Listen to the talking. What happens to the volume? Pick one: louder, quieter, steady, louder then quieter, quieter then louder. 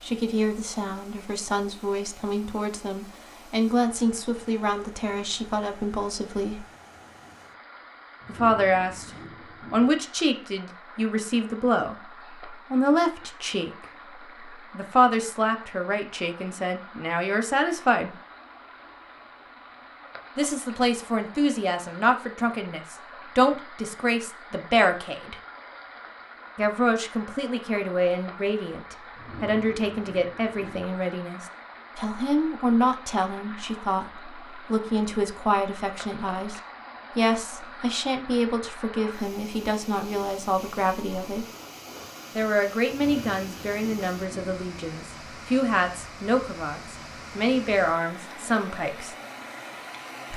steady.